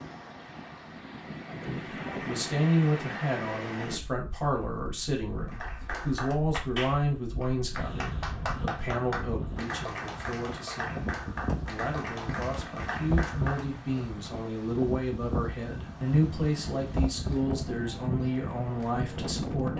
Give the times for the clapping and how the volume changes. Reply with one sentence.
The clapping can be heard from 5.5 to 14.1 s, at a steady volume.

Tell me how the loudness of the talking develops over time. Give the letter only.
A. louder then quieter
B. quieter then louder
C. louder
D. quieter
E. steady
B.